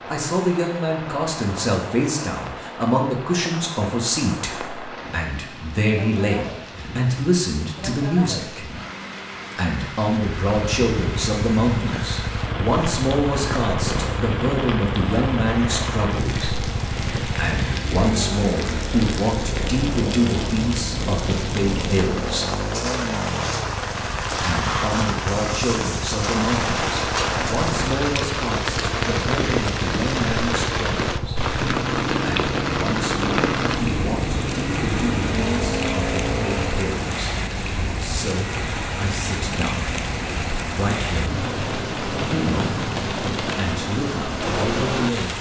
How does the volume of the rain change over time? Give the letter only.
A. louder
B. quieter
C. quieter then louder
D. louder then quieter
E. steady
A.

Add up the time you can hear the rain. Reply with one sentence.
You can hear the rain for 45 seconds altogether.